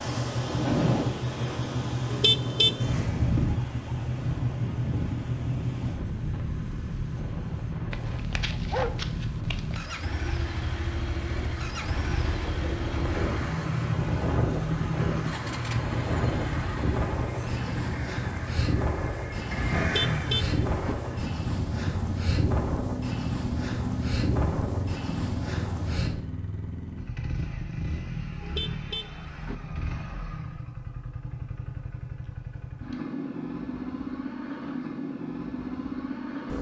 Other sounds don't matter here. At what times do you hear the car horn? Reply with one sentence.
The car horn can be heard from 2.1 to 3.0 s, from 19.8 to 20.9 s and from 28.4 to 29.6 s.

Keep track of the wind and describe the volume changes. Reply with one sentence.
The loudness of the wind goes down, then up.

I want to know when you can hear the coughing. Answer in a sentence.
You can't hear the coughing here.